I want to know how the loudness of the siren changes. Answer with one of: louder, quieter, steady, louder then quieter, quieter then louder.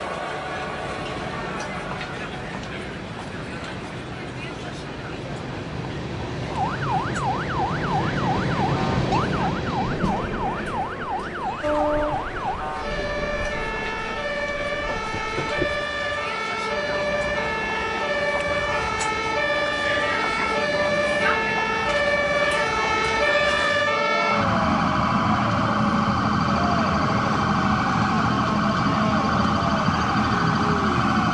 louder.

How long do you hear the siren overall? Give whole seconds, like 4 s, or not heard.
25 s.